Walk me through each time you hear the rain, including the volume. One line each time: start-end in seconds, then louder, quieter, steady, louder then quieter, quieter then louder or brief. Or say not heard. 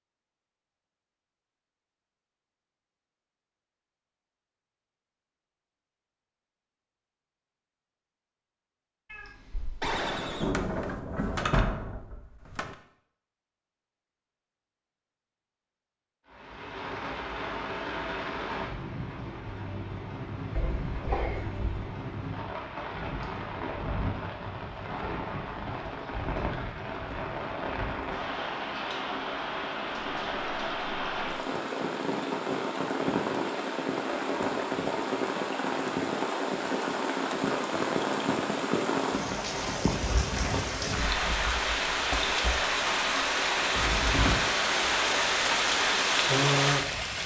16.2-47.2 louder.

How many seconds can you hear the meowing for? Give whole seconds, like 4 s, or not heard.
3 s.